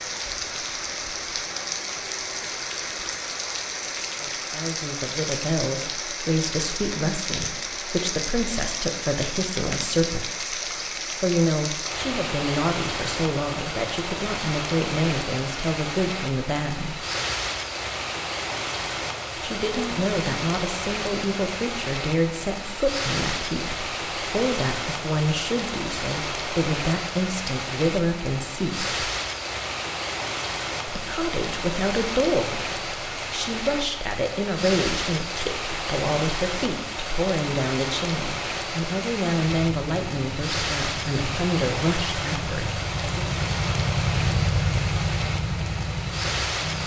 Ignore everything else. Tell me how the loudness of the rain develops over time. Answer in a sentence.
The volume of the rain stays about the same.